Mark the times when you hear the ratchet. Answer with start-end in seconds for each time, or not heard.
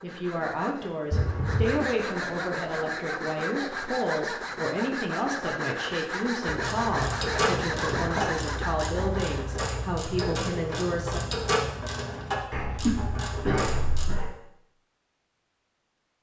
6.5-14.1.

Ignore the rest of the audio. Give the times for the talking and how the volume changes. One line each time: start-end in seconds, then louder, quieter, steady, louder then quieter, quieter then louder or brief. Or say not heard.
0.0-11.2 steady.